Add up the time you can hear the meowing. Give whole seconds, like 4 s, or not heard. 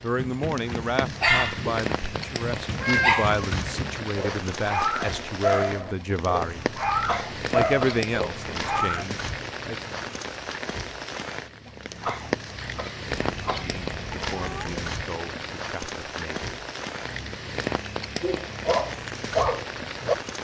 2 s.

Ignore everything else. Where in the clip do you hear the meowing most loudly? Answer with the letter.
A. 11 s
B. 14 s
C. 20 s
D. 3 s
D.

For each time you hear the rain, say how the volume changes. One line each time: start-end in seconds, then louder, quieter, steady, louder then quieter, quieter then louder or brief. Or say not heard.
0.0-20.3 steady.